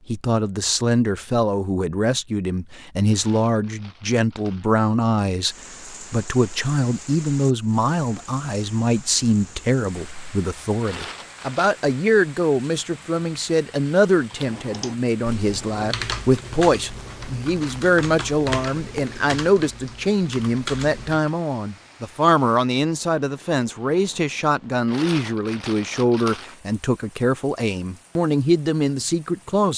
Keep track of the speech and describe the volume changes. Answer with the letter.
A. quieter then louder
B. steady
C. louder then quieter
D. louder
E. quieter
B.